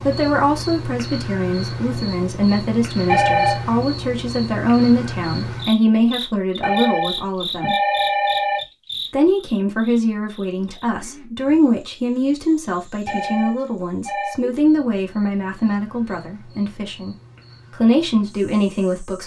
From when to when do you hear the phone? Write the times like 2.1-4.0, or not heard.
3.0-3.7, 6.6-8.6, 13.1-14.4.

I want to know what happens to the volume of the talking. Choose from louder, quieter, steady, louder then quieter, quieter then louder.
steady.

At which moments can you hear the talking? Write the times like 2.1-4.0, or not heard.
0.1-7.8, 9.1-19.2.